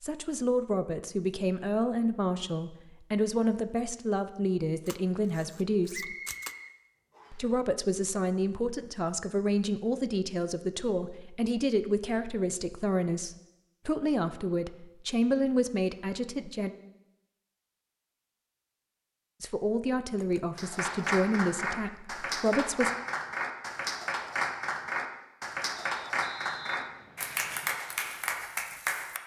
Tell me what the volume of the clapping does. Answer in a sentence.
The loudness of the clapping stays about the same.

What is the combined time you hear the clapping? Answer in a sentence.
You can hear the clapping for 9 seconds altogether.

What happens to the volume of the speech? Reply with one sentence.
The volume of the speech stays about the same.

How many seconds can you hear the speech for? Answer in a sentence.
You can hear the speech for 19 seconds altogether.